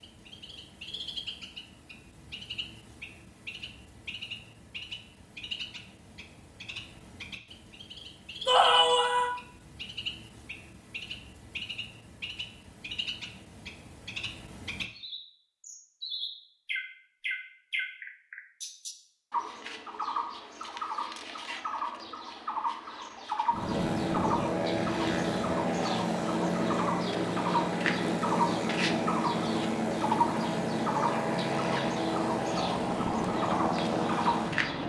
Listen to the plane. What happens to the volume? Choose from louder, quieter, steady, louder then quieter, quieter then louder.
steady.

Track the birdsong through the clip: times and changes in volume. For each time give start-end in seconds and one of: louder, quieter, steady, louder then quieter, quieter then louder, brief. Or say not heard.
0.0-34.8 louder.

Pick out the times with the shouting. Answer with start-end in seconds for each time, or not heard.
8.4-9.3.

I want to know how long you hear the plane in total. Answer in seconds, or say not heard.
11 s.